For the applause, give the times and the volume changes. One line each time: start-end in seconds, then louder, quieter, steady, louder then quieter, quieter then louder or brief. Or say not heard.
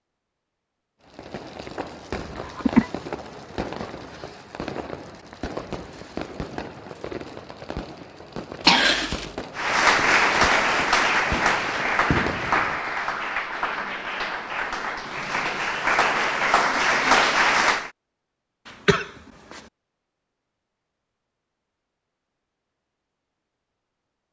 9.6-17.9 quieter then louder.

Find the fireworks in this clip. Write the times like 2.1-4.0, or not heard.
1.1-12.9.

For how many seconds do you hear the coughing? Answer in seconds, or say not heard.
2 s.